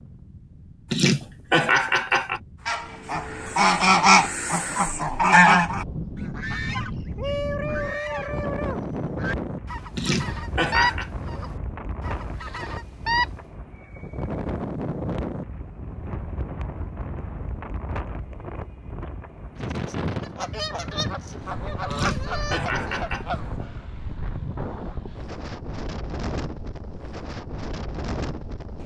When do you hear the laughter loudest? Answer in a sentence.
The loudest moment of the laughter is at 2 seconds.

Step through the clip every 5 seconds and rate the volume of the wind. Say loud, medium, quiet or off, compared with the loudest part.
quiet, loud, loud, loud, loud, loud.